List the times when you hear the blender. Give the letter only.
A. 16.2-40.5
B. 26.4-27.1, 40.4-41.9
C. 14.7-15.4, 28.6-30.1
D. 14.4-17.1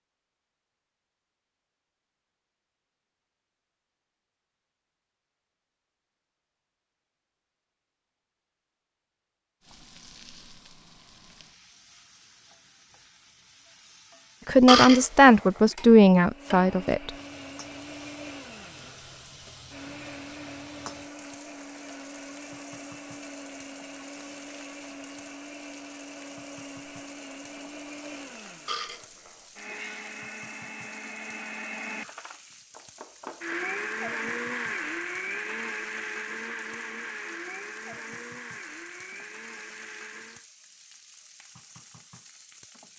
A.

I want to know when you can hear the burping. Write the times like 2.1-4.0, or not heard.
14.7-15.4, 28.6-30.1.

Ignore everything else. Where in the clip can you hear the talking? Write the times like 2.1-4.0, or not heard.
14.4-17.1.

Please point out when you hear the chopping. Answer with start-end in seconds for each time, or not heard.
not heard.